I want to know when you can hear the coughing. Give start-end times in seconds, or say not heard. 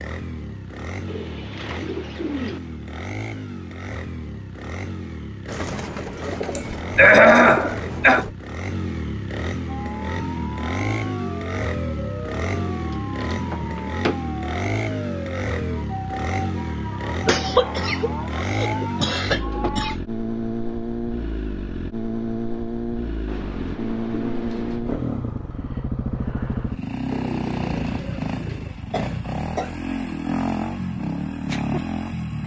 6.5-8.2, 17.2-19.9, 28.9-29.8.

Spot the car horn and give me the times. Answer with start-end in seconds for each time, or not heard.
not heard.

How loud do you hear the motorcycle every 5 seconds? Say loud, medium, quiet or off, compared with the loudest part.
medium, medium, loud, loud, loud, loud, loud.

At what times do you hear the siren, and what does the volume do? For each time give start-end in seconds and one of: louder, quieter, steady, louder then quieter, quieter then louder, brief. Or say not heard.
9.7-19.9 steady.